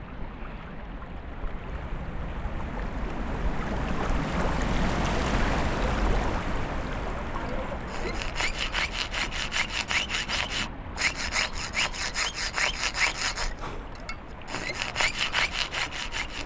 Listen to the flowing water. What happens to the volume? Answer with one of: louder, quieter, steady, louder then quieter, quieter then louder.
louder then quieter.